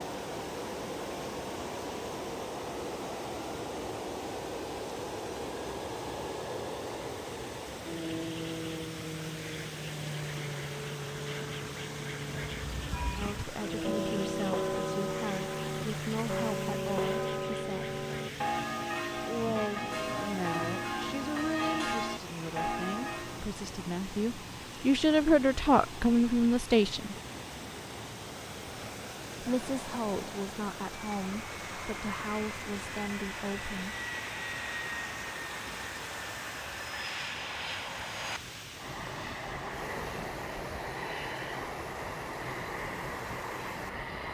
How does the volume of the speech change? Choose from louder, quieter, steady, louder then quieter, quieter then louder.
louder then quieter.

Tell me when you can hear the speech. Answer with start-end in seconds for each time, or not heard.
13.2-17.9, 19.1-27.1, 29.4-34.0.